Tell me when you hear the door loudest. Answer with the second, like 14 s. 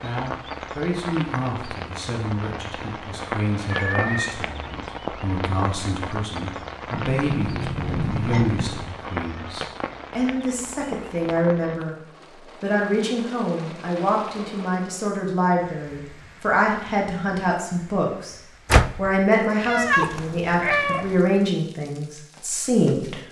19 s.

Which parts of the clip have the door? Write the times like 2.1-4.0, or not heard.
6.9-8.9, 18.7-19.1.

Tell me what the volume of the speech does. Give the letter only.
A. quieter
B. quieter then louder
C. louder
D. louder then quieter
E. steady
C.